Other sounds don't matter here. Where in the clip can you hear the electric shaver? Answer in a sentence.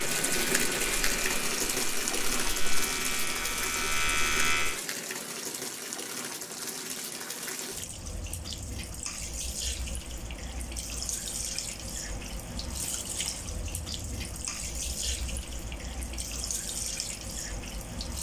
The electric shaver can be heard from 0.0 to 4.8 s.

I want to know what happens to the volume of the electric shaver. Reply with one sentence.
The loudness of the electric shaver goes up.